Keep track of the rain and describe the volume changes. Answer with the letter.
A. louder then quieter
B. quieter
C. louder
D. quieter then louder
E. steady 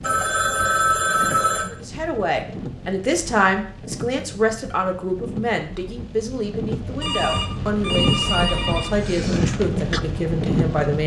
C.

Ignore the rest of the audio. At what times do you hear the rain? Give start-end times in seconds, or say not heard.
0.0-11.0.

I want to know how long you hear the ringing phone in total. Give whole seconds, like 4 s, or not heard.
4 s.